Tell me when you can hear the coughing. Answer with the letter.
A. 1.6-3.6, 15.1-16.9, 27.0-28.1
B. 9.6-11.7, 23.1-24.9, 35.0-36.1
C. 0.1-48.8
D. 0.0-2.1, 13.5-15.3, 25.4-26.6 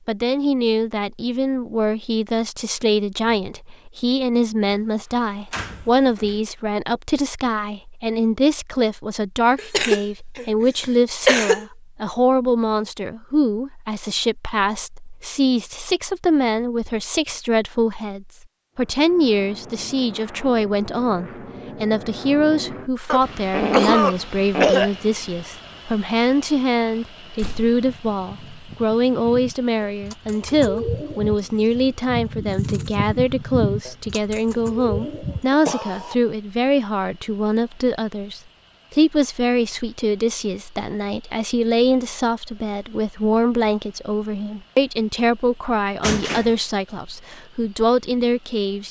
B.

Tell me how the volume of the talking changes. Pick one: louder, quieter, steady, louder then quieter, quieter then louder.
steady.